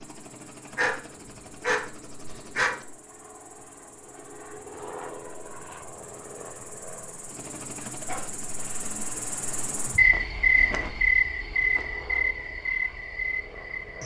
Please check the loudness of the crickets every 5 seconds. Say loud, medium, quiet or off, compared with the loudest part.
quiet, quiet, loud.